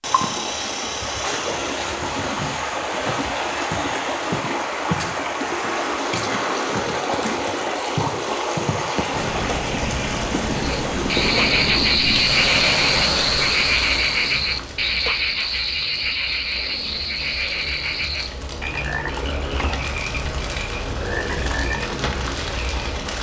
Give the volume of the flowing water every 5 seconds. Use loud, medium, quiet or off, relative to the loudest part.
loud, loud, loud, off, off.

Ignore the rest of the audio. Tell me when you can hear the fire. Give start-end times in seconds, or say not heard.
9.2-23.1.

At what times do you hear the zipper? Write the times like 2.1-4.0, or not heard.
not heard.